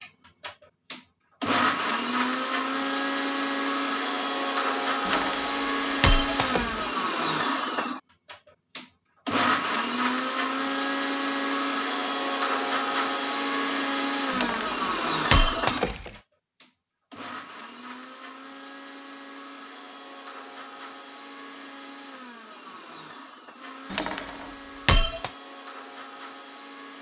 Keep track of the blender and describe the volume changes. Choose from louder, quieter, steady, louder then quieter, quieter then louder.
quieter.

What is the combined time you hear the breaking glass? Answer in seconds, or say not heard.
5 s.